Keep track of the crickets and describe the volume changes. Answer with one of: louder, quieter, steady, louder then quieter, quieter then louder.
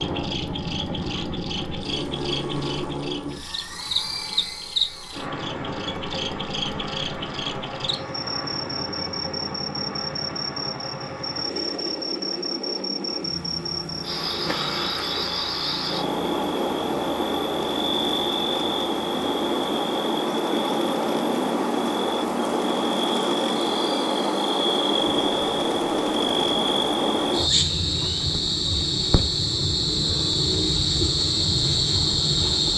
louder.